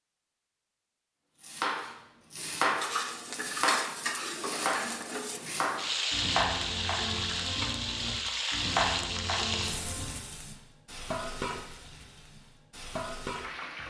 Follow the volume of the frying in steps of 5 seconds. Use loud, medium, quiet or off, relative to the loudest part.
loud, loud, medium.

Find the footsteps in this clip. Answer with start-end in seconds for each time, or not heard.
not heard.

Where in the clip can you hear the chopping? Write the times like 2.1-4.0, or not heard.
1.4-10.2.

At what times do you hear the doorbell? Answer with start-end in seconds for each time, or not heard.
not heard.